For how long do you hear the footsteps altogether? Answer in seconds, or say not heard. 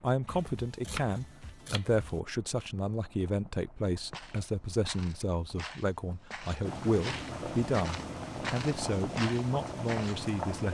6 s.